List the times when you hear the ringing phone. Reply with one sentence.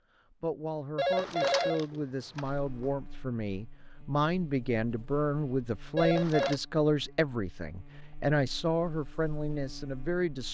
The ringing phone can be heard from 0.9 to 2.9 s and from 6.0 to 6.6 s.